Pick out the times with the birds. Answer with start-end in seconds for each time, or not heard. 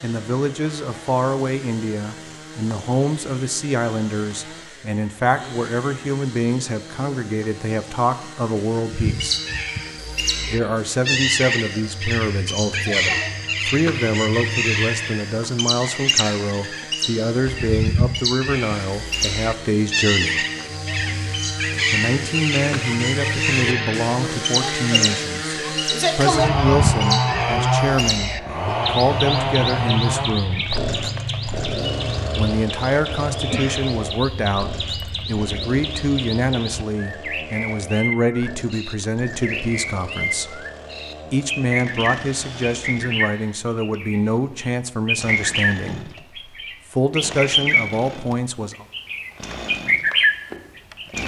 8.9-47.9, 48.7-51.2.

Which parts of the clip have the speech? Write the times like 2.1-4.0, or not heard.
0.0-9.4, 10.4-20.4, 21.9-30.7, 32.4-40.6, 41.3-46.1, 46.9-48.9.